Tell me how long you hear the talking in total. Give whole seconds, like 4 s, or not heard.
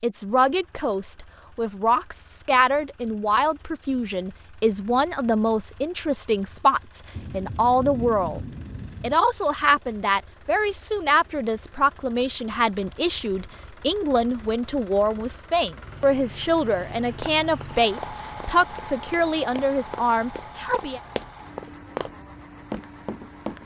21 s.